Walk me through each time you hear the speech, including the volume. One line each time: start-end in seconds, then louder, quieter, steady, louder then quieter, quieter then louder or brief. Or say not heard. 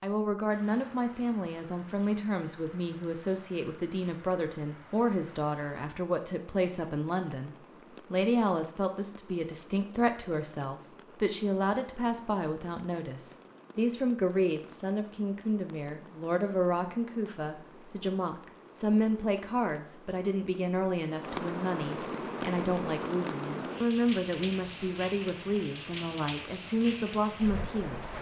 0.0-28.1 steady.